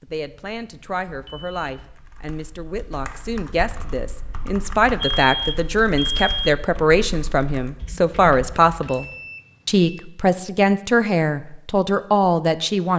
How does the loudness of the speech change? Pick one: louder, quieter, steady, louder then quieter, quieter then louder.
louder.